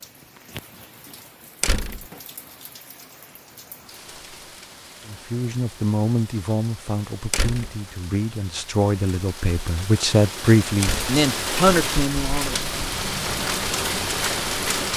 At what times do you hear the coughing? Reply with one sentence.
The coughing can't be heard in this clip.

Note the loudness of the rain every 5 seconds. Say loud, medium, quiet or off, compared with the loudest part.
quiet, quiet, loud.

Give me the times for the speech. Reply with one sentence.
You can hear the speech from 5.0 to 12.6 s.